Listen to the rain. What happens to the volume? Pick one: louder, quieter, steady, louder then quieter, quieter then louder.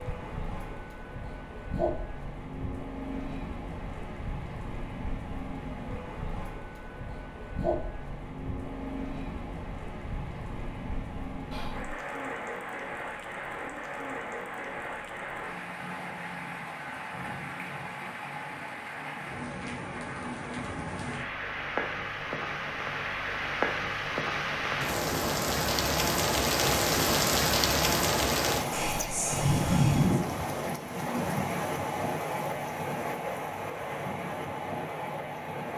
louder.